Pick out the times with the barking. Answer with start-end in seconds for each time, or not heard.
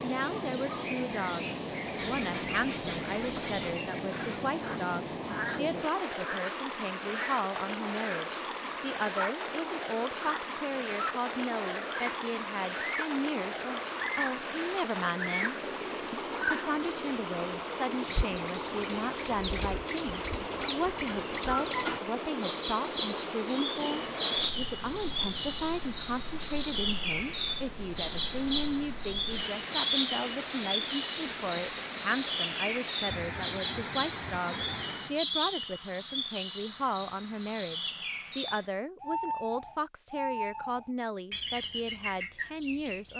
not heard.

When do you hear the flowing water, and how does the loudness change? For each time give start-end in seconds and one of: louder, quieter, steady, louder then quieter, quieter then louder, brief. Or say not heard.
0.0-35.2 steady.